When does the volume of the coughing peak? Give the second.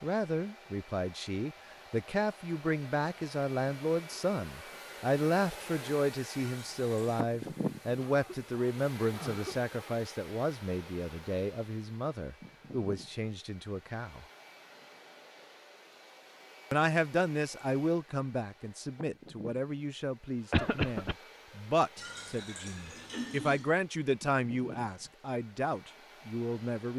21 s.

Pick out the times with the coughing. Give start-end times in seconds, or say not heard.
8.0-9.9, 20.5-21.1.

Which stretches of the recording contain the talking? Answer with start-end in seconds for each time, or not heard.
0.0-14.2, 16.7-26.9.